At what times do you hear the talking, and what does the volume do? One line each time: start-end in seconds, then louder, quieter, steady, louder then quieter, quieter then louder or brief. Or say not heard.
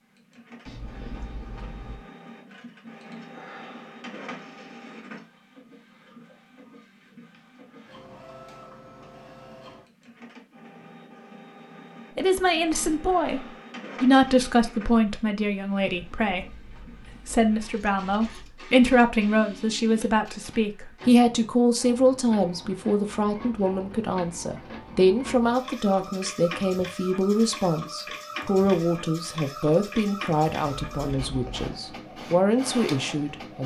12.2-33.6 steady.